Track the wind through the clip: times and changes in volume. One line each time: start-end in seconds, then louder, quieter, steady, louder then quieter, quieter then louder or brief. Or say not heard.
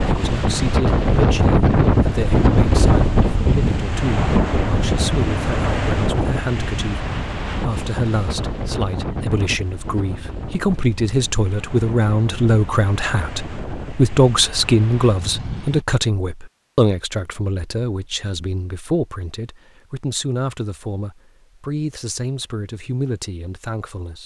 0.0-15.8 quieter.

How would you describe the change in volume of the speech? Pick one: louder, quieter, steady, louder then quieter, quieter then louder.
louder then quieter.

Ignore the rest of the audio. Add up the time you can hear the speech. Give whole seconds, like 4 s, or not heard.
24 s.